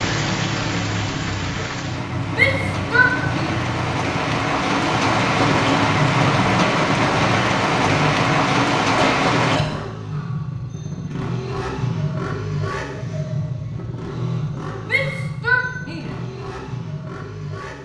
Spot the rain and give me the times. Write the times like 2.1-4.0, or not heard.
0.0-9.6.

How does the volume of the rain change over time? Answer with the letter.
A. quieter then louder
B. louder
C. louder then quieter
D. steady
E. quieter
B.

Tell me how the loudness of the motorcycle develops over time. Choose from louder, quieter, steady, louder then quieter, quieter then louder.
steady.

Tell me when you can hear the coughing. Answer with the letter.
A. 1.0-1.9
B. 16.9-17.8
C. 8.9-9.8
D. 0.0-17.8
C.